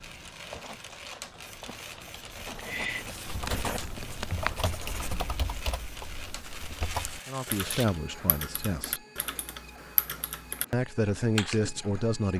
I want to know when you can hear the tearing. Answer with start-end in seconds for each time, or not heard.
6.4-7.8.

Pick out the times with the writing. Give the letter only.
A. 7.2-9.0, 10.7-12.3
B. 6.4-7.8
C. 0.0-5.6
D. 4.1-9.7
C.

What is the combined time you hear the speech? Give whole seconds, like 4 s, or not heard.
3 s.